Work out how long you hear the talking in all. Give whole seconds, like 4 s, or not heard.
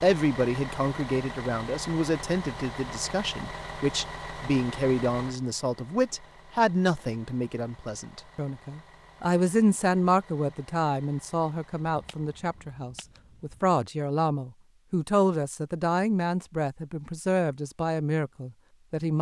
19 s.